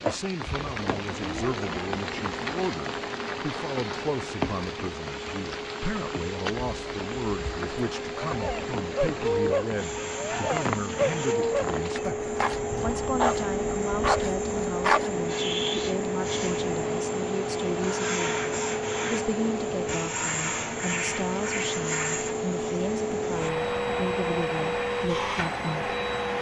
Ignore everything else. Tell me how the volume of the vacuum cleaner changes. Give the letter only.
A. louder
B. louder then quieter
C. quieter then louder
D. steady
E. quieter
A.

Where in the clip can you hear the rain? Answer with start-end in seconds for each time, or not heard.
0.0-26.3.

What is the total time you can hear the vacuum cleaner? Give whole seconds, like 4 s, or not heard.
26 s.